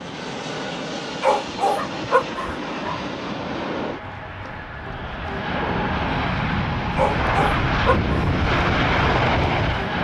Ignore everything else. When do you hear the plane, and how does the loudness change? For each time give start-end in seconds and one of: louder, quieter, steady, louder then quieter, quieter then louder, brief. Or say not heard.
0.0-10.0 louder.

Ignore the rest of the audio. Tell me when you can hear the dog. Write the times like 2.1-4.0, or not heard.
1.2-3.0, 7.0-8.2.